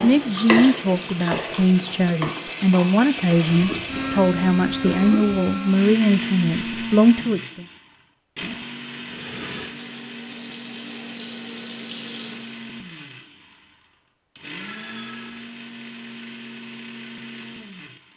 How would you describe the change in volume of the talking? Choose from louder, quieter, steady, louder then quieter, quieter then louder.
steady.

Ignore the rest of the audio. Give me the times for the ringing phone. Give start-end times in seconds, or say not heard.
14.6-15.5.